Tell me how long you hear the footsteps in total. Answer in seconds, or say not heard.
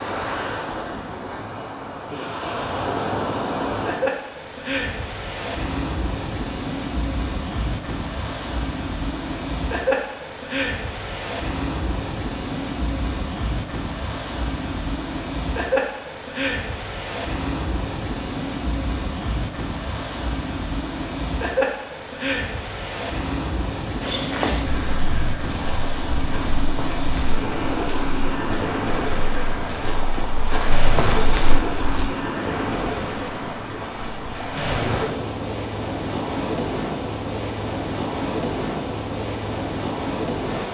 8 s.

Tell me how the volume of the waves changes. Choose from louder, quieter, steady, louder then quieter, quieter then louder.
steady.